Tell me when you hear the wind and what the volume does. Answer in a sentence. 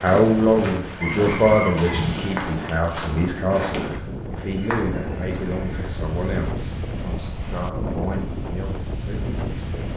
You can hear the wind from 0.0 to 9.9 s, at a steady volume.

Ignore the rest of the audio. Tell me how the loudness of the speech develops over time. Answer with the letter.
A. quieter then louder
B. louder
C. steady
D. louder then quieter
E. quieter
E.